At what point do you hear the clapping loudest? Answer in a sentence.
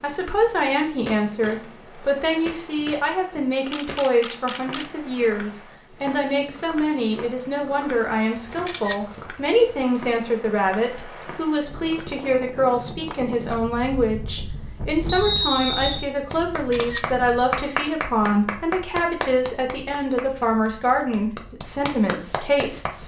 The loudest moment of the clapping is at 18 seconds.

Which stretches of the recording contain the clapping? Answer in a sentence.
You can hear the clapping from 16.3 to 22.9 s.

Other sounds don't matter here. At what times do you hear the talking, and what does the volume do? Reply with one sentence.
The talking can be heard from 0.0 to 23.0 s, at a steady volume.